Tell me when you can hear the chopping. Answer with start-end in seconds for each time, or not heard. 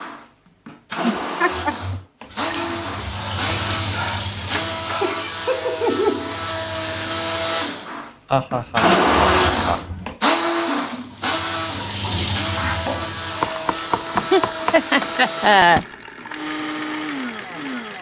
13.4-15.2.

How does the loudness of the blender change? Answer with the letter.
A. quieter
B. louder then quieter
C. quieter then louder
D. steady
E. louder
B.